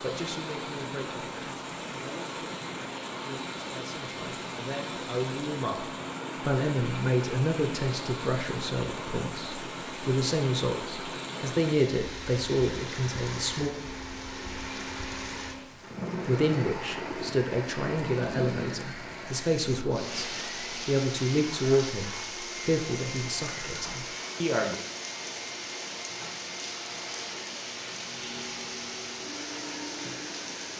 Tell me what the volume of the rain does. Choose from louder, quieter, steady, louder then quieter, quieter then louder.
steady.